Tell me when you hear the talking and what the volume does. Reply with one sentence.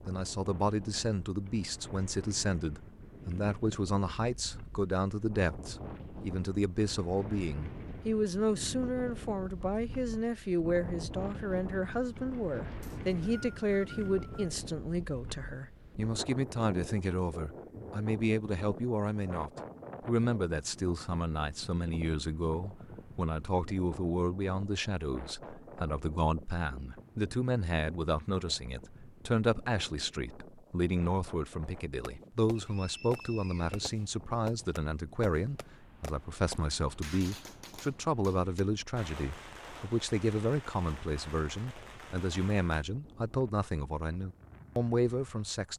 You can hear the talking from 0.0 to 45.7 s, at a steady volume.